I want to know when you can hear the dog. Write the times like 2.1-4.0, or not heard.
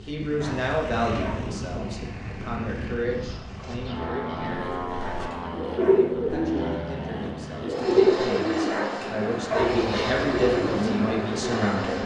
0.3-1.5, 5.0-6.1, 8.7-9.8.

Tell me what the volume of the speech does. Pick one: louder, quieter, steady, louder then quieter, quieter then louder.
quieter then louder.